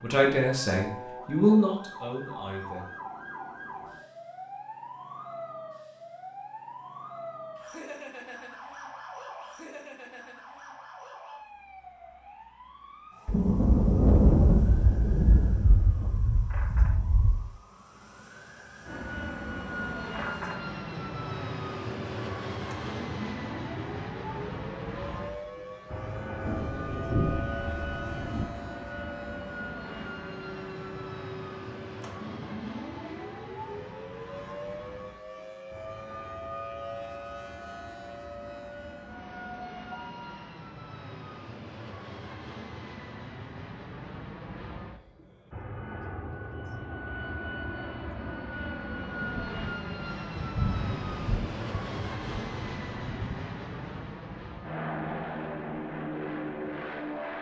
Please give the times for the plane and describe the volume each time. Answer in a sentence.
You can hear the plane from 18.8 to 57.3 s, getting quieter then louder.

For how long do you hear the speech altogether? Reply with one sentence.
The speech can be heard for 3 seconds in total.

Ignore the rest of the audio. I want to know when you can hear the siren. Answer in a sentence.
The siren can be heard from 0.0 to 40.5 s.